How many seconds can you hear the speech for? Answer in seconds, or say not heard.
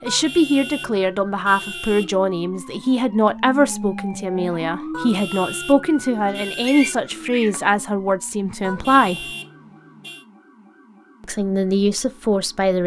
11 s.